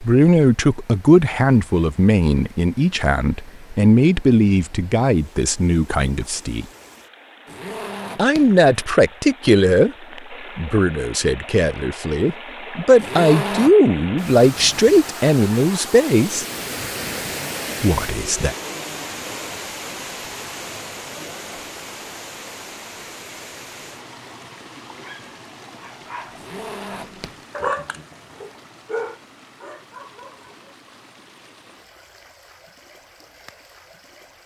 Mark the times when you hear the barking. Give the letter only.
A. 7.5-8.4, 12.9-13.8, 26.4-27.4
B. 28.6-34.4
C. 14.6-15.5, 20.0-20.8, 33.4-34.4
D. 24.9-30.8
D.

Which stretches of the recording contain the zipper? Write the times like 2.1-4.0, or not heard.
7.5-8.4, 12.9-13.8, 26.4-27.4.